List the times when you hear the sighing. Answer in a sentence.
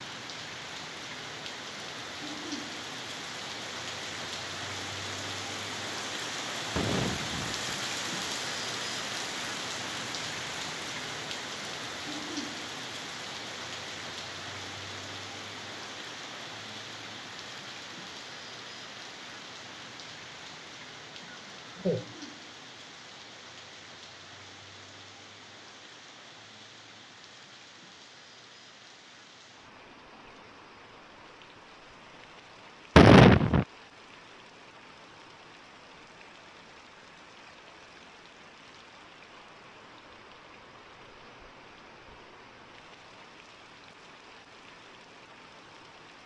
You can hear the sighing from 6.8 to 7.8 s, from 21.2 to 22.2 s and from 33.0 to 33.6 s.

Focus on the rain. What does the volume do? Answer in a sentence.
The loudness of the rain goes down.